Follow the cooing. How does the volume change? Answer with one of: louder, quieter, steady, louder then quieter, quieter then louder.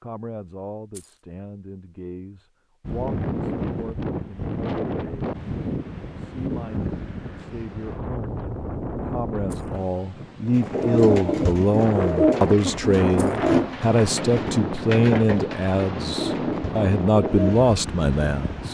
quieter.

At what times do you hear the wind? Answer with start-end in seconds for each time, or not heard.
2.8-18.6.